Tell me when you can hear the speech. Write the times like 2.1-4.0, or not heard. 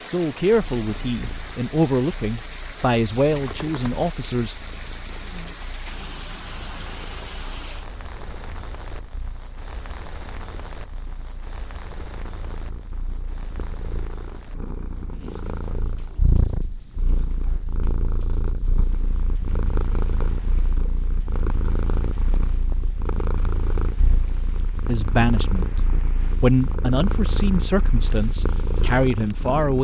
0.0-4.5, 24.9-25.7, 26.4-29.7.